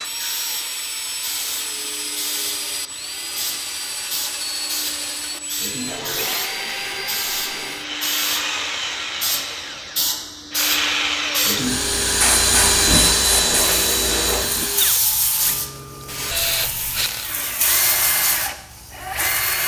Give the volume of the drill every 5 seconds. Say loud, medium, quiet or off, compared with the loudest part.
medium, medium, loud, medium.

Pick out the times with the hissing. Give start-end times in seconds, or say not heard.
0.0-19.6.